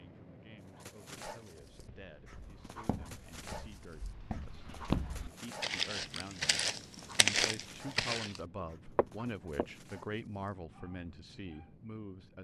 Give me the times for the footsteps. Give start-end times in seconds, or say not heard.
1.6-9.7.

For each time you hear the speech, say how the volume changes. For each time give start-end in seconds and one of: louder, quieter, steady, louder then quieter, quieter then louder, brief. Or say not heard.
0.0-12.3 louder.